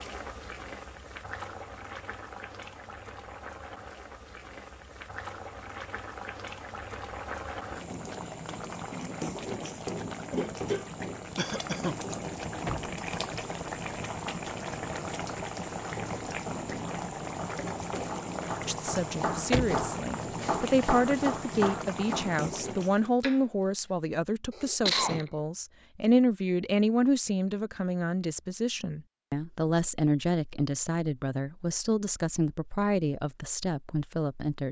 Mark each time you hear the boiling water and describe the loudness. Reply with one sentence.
You can hear the boiling water from 0.0 to 23.1 s, getting louder.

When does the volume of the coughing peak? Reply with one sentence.
The volume of the coughing peaks at 25 seconds.